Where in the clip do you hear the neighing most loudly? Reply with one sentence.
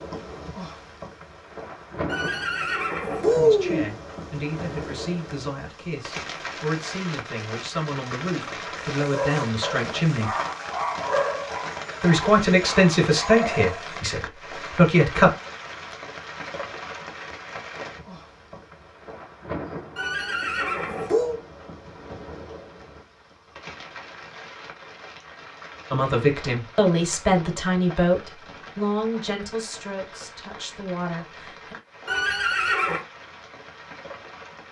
The loudest moment of the neighing is at 3 seconds.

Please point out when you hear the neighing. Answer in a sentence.
The neighing can be heard from 2.0 to 4.0 s, from 19.9 to 21.4 s and from 32.0 to 33.0 s.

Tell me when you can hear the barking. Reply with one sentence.
You can hear the barking from 8.9 to 14.0 s.